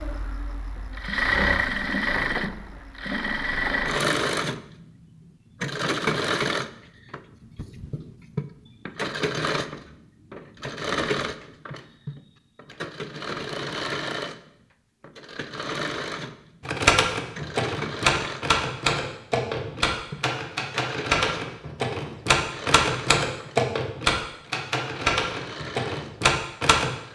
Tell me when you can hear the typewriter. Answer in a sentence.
You can hear the typewriter from 16.6 to 26.9 s.